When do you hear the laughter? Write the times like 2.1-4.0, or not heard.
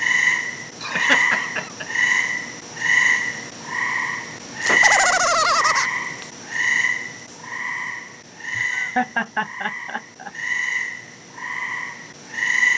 0.8-2.0, 4.7-5.9, 8.6-10.3.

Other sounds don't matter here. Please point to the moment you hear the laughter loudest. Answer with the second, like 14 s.
5 s.